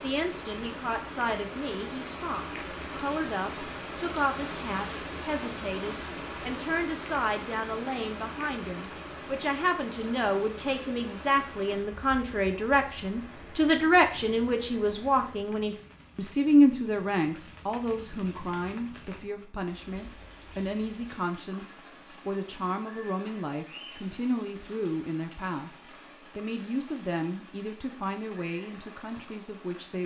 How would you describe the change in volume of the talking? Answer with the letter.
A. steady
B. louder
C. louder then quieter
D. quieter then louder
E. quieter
C.